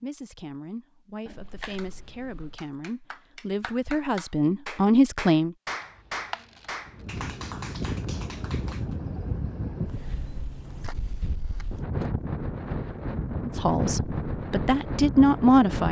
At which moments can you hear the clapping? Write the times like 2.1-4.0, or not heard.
1.8-8.9.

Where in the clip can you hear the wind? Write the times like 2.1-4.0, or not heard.
6.8-15.8.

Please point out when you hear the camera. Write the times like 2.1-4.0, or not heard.
1.2-2.5, 5.8-7.2, 10.7-11.8.